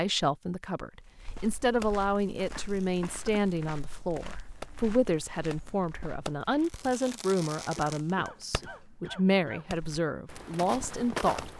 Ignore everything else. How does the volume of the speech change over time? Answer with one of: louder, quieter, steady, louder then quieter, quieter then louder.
steady.